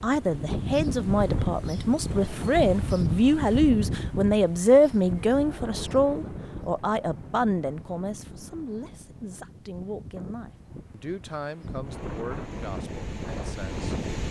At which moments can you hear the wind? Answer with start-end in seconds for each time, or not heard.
0.0-14.2.